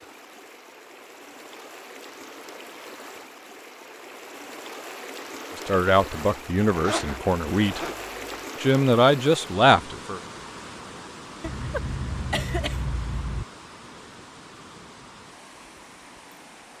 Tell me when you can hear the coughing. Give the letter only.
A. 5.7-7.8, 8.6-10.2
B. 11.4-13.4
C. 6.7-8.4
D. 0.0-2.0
B.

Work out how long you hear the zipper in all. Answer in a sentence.
You can hear the zipper for 2 seconds altogether.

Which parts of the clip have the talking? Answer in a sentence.
You can hear the talking from 5.7 to 7.8 s and from 8.6 to 10.2 s.